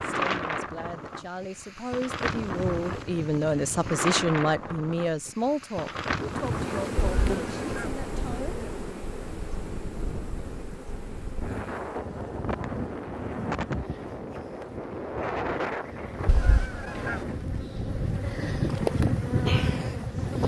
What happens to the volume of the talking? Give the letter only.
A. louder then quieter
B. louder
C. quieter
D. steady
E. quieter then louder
A.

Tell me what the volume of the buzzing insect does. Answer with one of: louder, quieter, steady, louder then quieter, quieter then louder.
quieter then louder.